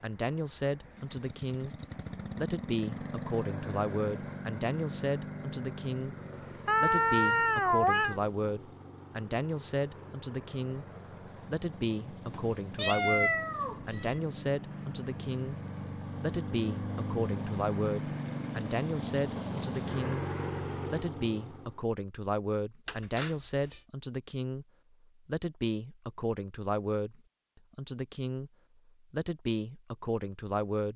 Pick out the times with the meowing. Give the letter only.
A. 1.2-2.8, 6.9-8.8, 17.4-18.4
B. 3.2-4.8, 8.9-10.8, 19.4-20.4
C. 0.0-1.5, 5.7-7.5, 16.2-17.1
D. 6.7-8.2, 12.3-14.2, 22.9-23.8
D.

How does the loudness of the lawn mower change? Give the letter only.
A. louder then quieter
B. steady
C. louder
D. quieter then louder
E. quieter
D.